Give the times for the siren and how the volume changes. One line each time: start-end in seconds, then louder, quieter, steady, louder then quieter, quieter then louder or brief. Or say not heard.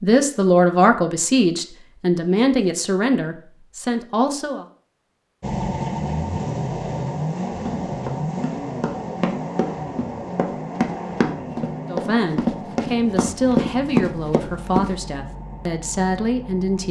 not heard.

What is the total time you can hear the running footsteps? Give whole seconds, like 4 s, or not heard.
7 s.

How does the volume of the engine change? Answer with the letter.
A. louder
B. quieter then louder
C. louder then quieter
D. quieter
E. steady
D.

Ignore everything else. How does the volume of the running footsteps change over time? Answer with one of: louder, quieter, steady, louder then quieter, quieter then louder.
louder.